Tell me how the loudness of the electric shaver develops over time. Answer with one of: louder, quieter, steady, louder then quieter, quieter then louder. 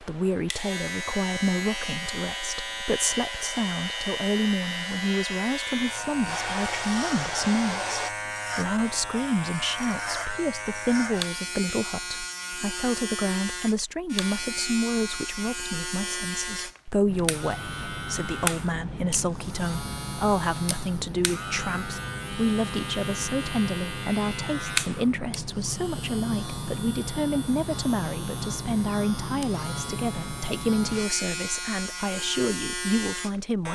steady.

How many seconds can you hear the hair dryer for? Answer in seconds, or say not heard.
5 s.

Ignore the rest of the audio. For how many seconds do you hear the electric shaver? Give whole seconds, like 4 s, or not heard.
34 s.